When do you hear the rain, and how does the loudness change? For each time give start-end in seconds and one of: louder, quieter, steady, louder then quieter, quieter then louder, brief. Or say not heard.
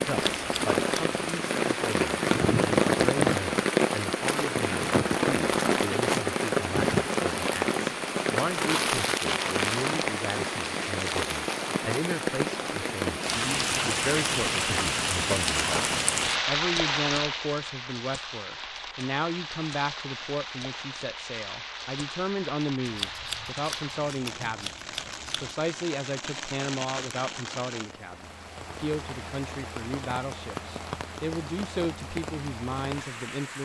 0.0-33.5 quieter.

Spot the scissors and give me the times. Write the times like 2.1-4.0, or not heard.
0.1-1.1, 22.9-25.6.